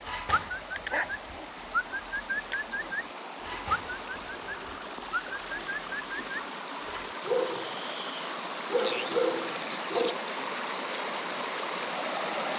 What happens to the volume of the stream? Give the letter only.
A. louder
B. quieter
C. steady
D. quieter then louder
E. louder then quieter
A.